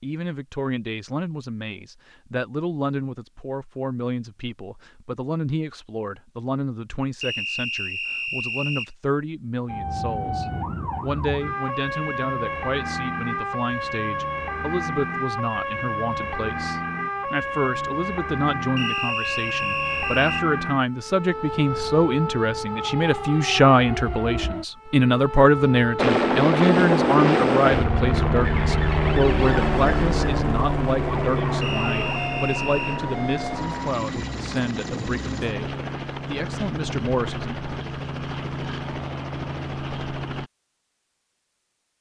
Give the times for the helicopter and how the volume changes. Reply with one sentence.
You can hear the helicopter from 25.9 to 40.5 s, getting quieter.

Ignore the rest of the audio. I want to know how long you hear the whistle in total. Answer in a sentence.
The whistle can be heard for 5 seconds in total.